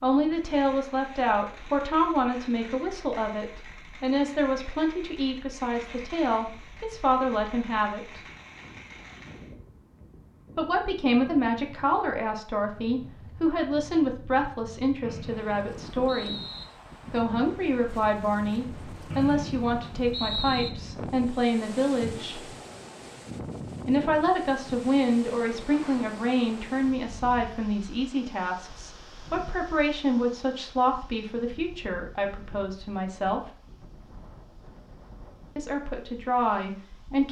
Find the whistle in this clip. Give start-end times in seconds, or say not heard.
15.1-16.6, 19.1-20.7.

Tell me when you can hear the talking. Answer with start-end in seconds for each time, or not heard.
0.0-8.2, 10.6-16.4, 17.1-22.4, 23.9-33.4, 35.5-37.2.